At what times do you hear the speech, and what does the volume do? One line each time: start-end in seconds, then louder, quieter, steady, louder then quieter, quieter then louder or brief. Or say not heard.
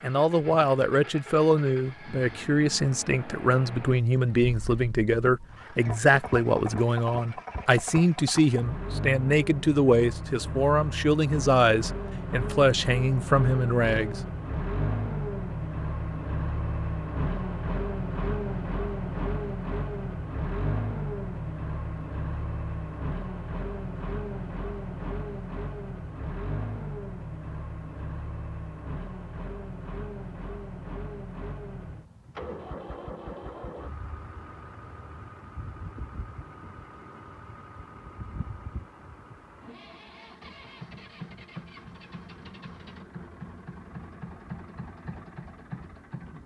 0.0-14.2 steady.